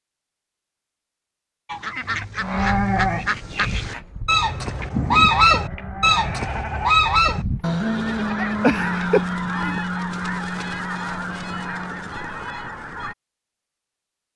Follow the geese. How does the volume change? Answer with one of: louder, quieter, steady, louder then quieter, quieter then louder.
louder then quieter.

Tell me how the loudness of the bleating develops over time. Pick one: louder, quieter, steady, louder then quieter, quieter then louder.
quieter then louder.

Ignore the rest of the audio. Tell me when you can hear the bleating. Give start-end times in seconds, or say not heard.
2.4-9.8.